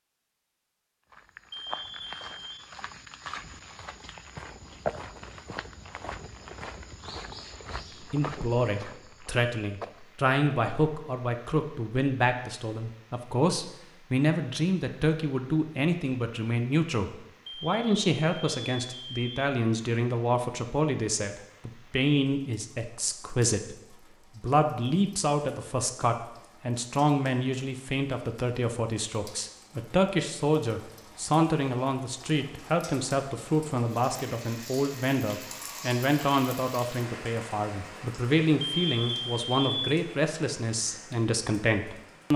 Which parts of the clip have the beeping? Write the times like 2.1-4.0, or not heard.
1.5-2.7, 17.4-19.4, 38.6-40.0.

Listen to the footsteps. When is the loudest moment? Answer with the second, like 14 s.
5 s.